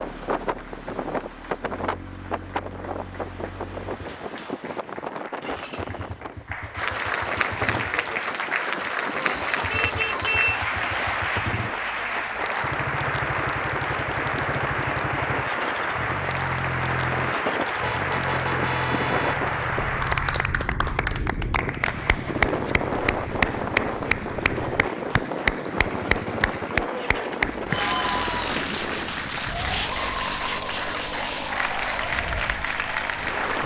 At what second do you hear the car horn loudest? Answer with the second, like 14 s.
10 s.